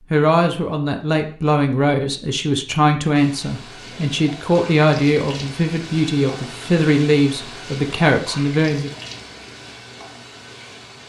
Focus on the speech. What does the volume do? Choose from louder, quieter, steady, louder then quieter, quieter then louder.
steady.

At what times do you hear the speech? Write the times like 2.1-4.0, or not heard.
0.1-8.9.